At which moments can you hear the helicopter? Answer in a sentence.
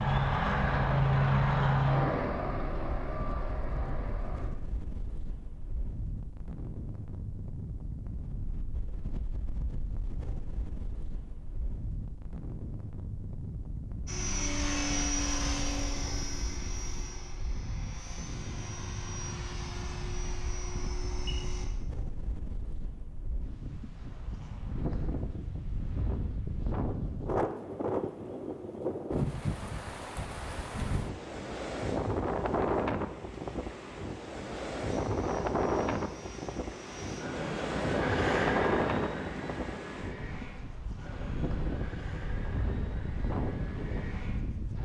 You can hear the helicopter from 0.0 to 4.5 s, from 14.1 to 21.6 s and from 34.9 to 44.8 s.